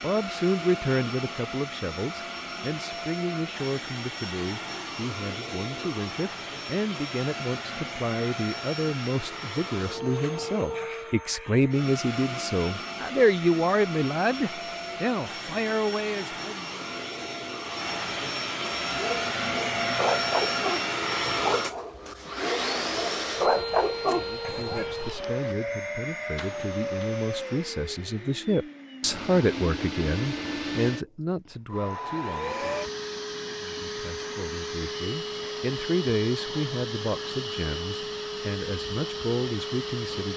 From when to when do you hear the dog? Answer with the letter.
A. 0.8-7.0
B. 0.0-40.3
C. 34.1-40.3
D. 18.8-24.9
D.